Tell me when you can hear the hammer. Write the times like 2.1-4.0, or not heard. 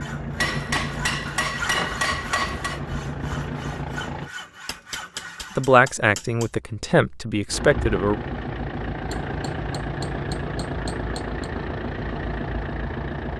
0.3-2.8, 4.7-6.5, 9.1-11.4.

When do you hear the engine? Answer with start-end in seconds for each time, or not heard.
0.0-4.3, 7.5-13.3.